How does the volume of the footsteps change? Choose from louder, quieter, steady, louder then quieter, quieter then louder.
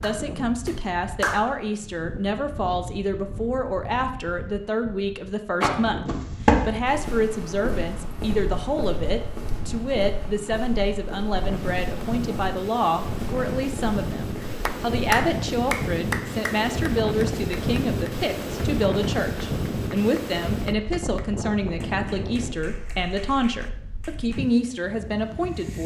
quieter.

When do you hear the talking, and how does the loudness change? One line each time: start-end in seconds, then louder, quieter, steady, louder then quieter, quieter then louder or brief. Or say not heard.
0.0-25.8 steady.